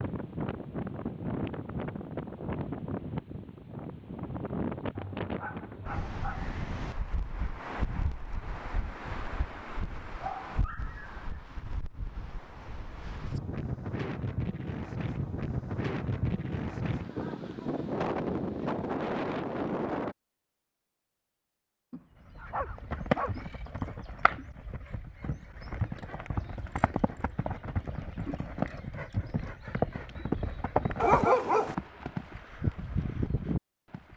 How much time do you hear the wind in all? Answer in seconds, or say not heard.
20 s.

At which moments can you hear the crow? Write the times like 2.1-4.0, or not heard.
not heard.